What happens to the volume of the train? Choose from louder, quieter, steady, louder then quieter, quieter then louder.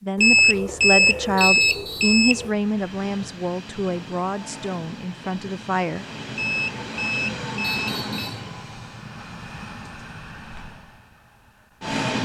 louder then quieter.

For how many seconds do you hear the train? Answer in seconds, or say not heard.
10 s.